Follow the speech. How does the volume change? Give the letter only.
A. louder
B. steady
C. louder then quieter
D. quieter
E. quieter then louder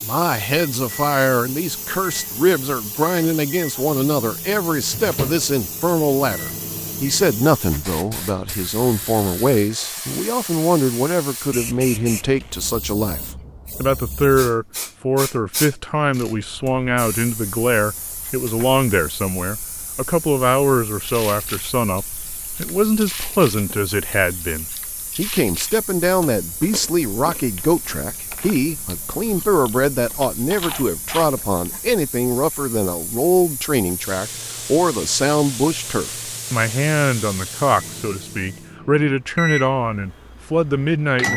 B.